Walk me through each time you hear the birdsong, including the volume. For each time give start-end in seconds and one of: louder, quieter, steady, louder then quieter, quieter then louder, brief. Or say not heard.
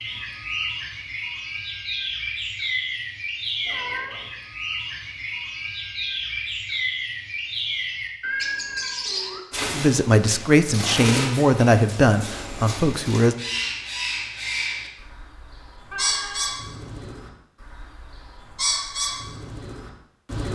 0.0-20.5 steady.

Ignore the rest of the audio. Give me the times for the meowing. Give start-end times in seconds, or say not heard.
3.6-4.3, 8.2-9.4, 15.9-16.6.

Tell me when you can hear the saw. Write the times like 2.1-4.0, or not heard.
not heard.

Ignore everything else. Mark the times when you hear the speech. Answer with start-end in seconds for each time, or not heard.
9.7-13.3.